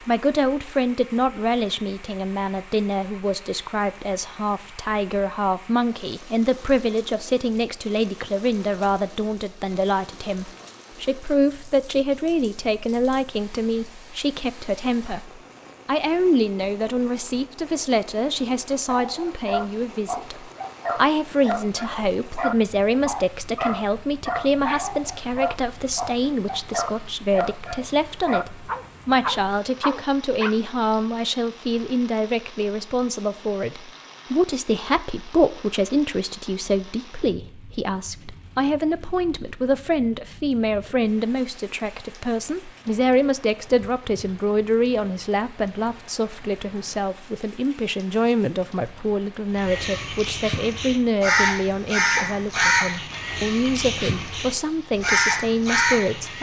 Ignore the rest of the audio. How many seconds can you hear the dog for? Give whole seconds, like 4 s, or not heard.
12 s.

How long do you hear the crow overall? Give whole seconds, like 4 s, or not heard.
7 s.